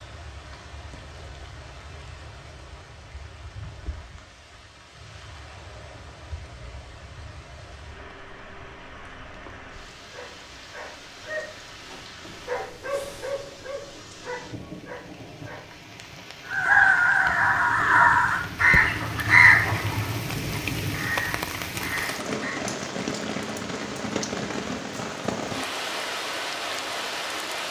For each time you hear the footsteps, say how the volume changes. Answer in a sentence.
You can't hear the footsteps here.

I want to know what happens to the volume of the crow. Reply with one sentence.
The volume of the crow goes down.